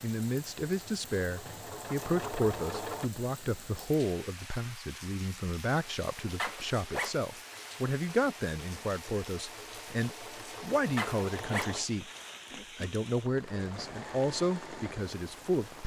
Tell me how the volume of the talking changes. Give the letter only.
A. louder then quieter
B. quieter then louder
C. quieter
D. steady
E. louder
D.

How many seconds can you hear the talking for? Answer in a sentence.
The talking can be heard for 15 seconds in total.